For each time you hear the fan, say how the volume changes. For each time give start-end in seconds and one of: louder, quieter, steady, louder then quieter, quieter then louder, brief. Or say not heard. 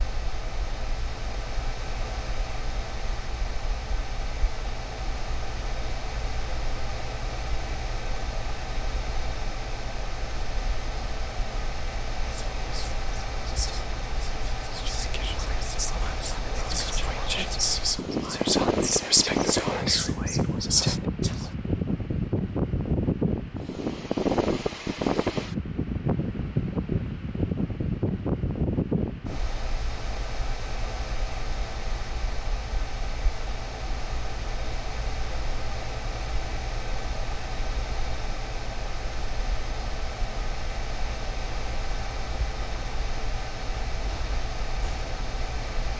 0.0-45.9 louder then quieter.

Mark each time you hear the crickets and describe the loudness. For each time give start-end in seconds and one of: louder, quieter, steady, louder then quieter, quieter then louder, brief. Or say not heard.
not heard.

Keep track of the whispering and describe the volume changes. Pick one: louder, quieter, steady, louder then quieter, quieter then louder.
louder.